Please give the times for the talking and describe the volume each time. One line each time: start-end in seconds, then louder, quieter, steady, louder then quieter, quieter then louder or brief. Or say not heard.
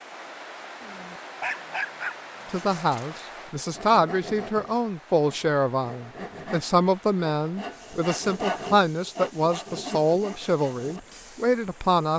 2.5-12.1 steady.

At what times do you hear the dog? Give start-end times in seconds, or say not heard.
0.8-2.8.